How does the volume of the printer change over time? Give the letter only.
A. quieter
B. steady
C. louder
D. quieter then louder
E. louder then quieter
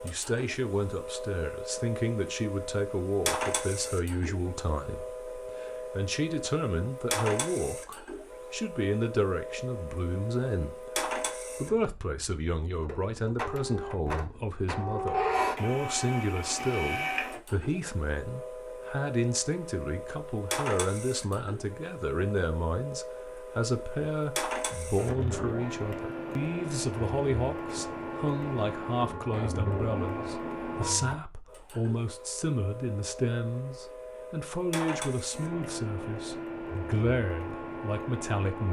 B.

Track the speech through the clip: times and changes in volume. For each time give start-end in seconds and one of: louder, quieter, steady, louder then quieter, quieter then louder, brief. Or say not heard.
0.0-38.6 steady.